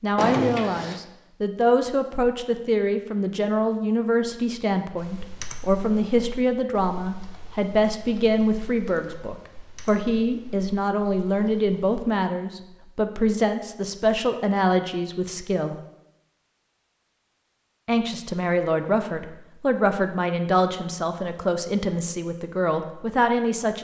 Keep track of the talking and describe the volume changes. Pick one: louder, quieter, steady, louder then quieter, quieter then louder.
steady.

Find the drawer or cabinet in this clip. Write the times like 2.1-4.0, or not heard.
0.1-1.0.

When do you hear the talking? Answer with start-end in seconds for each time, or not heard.
0.0-15.8, 17.9-23.7.